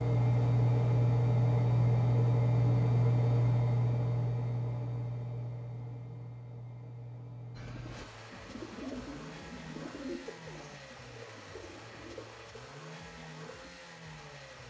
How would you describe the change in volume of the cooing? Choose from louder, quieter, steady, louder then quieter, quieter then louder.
quieter.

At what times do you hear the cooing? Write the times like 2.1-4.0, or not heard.
7.5-13.8.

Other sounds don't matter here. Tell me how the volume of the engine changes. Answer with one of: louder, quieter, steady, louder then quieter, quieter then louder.
quieter.